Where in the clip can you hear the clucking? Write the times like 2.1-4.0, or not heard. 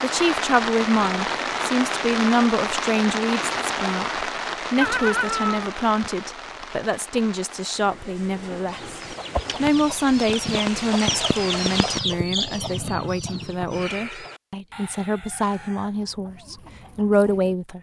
8.7-17.6.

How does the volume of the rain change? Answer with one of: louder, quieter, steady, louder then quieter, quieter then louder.
quieter then louder.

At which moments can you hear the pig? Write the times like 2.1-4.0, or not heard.
not heard.